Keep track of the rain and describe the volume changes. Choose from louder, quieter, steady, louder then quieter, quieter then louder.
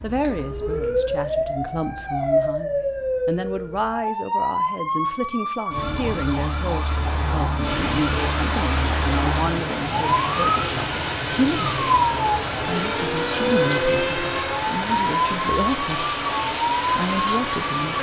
steady.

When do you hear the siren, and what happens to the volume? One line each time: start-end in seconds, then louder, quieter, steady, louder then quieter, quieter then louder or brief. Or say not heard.
0.0-17.9 steady.